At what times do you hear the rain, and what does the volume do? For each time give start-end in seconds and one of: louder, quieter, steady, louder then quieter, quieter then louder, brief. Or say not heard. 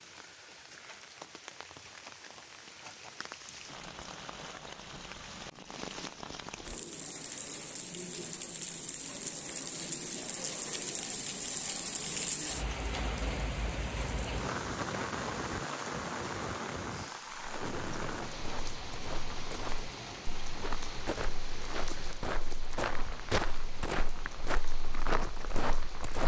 0.0-26.2 louder then quieter.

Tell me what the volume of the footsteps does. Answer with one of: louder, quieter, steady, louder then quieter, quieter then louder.
louder.